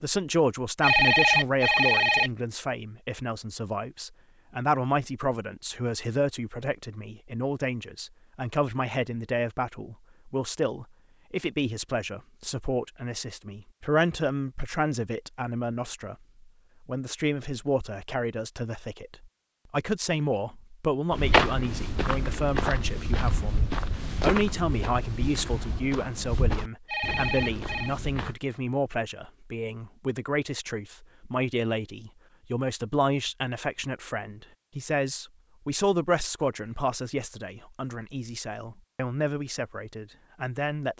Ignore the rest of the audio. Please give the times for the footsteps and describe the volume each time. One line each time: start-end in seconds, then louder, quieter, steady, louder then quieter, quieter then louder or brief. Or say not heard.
21.1-28.4 quieter.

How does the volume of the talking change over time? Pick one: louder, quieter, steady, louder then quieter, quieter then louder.
steady.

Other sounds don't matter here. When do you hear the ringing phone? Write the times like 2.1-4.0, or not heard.
0.8-2.3, 26.9-27.9.